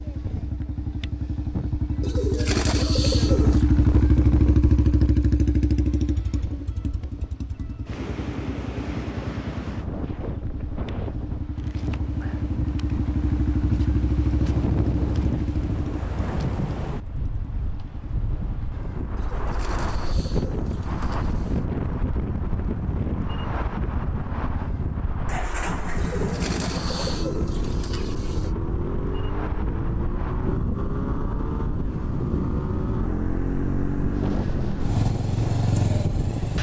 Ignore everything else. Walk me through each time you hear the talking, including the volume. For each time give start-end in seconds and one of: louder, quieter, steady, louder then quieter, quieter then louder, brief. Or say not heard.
not heard.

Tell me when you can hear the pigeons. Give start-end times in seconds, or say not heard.
2.0-3.6, 19.1-21.6, 25.9-28.5.